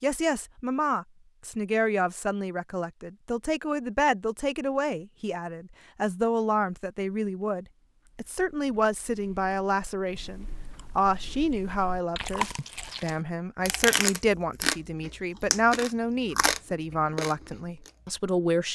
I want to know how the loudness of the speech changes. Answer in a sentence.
The loudness of the speech stays about the same.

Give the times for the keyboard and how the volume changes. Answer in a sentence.
The keyboard can't be heard in this clip.